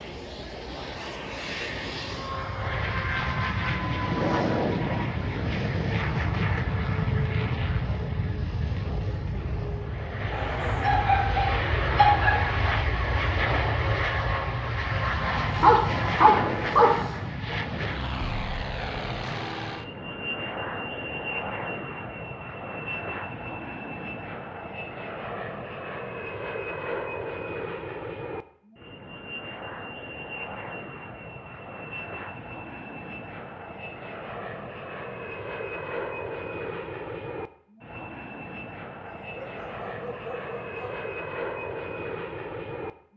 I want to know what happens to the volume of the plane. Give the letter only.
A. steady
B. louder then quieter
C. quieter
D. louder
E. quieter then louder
C.